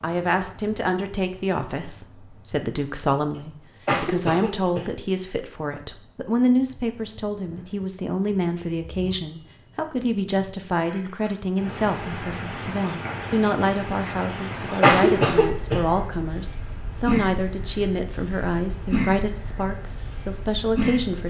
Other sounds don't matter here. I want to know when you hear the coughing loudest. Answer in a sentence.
The loudest moment of the coughing is at 15 seconds.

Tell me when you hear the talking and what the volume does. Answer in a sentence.
The talking can be heard from 0.0 to 21.2 s, at a steady volume.